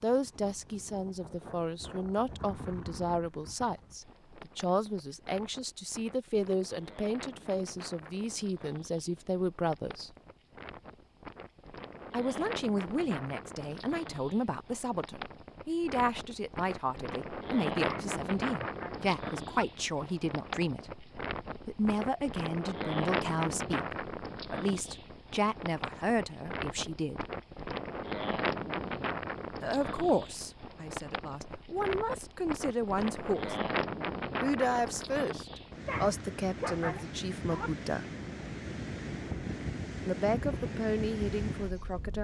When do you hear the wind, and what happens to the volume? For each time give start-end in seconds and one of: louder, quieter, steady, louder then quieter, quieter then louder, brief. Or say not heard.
0.0-42.2 louder.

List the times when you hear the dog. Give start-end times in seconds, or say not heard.
17.9-19.6, 35.8-37.7.